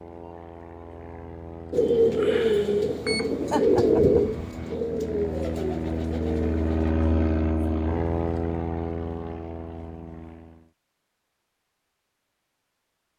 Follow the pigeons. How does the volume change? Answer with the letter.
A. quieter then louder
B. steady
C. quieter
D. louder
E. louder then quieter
C.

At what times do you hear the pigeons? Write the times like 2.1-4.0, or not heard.
1.7-7.0.